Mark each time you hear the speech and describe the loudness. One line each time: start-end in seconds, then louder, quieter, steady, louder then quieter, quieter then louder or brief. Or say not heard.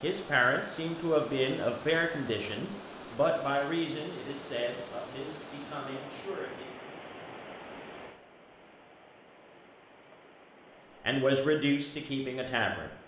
0.0-6.7 quieter
11.0-12.9 brief.